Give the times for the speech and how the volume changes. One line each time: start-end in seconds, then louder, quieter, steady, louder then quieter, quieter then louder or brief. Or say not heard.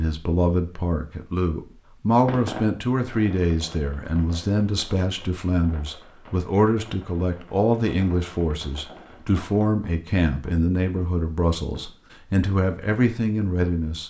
0.0-14.0 steady.